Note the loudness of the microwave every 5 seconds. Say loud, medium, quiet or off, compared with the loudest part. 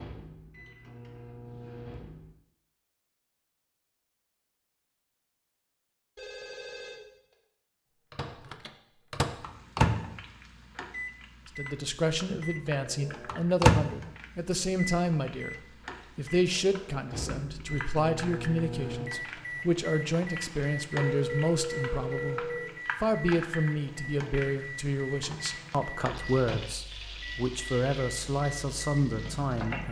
quiet, loud, loud, medium, medium, medium.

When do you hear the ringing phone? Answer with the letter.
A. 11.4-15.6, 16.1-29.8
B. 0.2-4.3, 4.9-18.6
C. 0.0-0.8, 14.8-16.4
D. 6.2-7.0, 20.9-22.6
D.